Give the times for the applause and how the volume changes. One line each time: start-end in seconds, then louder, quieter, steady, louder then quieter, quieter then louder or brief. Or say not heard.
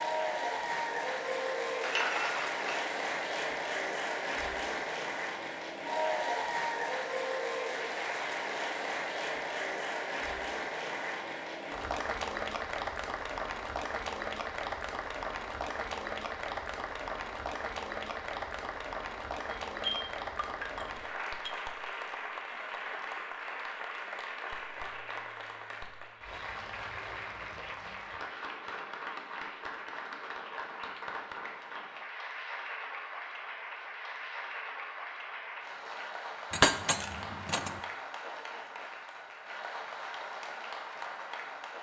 0.0-41.7 quieter.